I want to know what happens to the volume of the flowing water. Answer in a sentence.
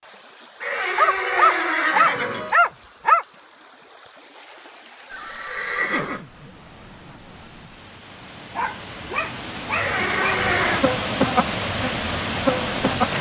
The volume of the flowing water goes up.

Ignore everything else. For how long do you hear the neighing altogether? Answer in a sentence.
The neighing can be heard for 4 seconds in total.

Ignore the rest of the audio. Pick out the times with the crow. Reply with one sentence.
The crow can't be heard in this clip.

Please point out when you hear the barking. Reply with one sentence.
You can hear the barking from 0.9 to 3.2 s and from 8.6 to 10.4 s.